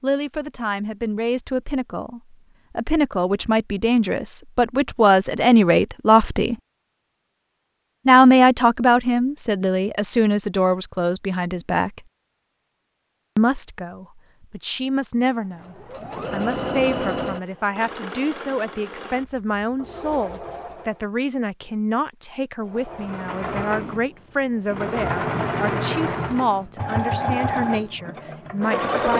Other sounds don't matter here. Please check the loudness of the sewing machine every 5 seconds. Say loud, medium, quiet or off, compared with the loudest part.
off, off, off, medium, medium, loud.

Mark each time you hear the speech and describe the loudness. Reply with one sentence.
You can hear the speech from 0.0 to 6.5 s, getting louder; from 8.1 to 12.1 s, getting quieter; and from 13.3 to 29.1 s, at a steady volume.